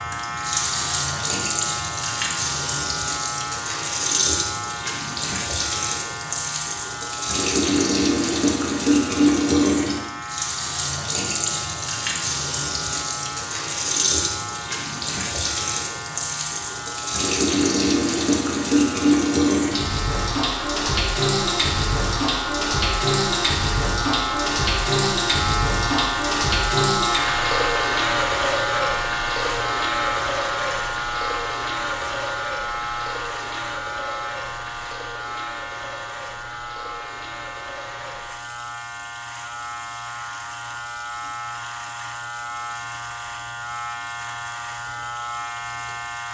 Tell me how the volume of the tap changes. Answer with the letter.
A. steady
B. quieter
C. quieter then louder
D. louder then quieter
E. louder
B.